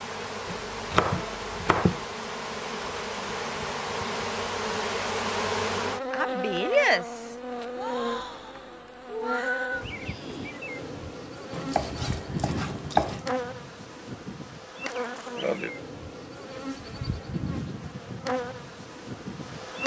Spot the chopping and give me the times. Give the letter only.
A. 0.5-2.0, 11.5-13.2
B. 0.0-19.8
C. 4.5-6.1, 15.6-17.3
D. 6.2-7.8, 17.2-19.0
A.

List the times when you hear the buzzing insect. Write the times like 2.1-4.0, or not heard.
0.0-19.8.